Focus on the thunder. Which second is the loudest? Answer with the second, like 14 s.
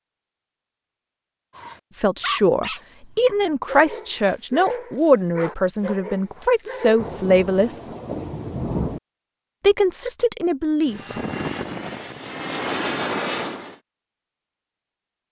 9 s.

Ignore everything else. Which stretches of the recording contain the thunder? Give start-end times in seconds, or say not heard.
7.0-9.0.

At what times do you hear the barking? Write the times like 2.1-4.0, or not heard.
1.6-7.2.